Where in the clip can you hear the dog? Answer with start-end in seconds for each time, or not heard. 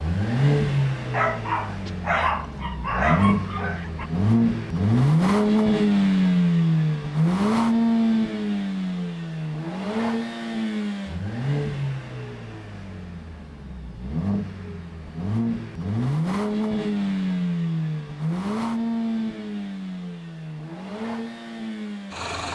1.1-4.1.